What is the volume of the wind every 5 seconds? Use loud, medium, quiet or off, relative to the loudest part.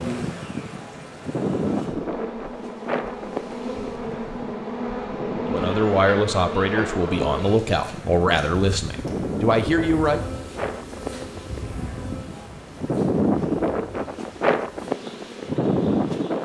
medium, medium, loud, loud.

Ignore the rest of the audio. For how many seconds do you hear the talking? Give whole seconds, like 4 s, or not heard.
5 s.